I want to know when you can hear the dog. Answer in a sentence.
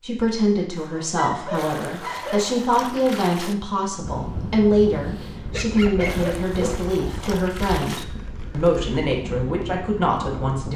The dog can be heard from 0.8 to 2.5 s and from 5.4 to 7.0 s.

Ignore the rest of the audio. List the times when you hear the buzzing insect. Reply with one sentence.
You can't hear the buzzing insect here.